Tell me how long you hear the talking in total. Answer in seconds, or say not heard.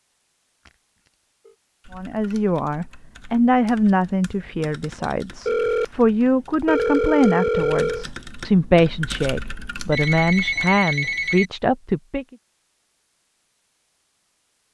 10 s.